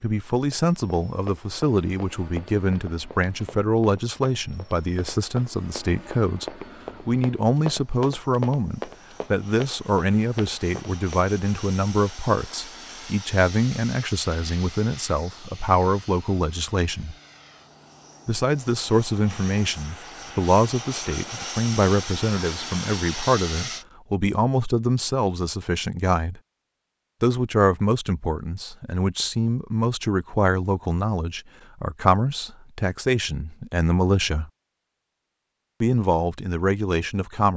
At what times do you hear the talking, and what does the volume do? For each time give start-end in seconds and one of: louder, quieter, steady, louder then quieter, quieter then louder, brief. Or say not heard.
0.0-17.1 steady
18.2-26.4 steady
27.2-34.5 steady
35.8-37.5 brief.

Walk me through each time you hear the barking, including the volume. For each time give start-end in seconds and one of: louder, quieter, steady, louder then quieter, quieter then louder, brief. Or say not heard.
not heard.